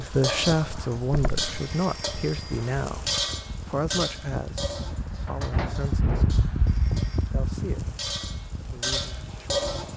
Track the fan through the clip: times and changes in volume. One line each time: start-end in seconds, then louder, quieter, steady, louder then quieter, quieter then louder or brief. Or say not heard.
0.1-9.9 louder then quieter.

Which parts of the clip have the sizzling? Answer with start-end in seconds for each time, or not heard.
0.0-9.9.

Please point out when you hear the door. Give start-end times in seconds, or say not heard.
1.1-1.7, 5.2-7.0.